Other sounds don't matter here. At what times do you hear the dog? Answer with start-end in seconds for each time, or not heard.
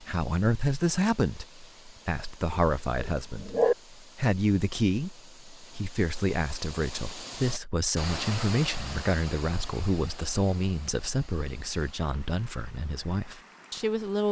2.5-3.8.